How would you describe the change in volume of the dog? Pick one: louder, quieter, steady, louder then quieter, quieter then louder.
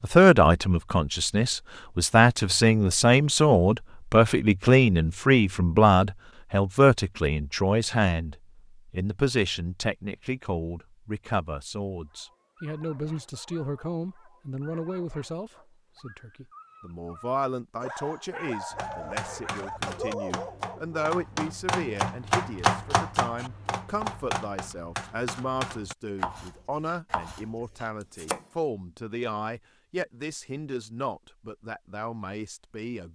louder.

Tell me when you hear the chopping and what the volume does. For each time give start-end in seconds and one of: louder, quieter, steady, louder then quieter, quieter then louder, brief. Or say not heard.
18.7-28.4 louder then quieter.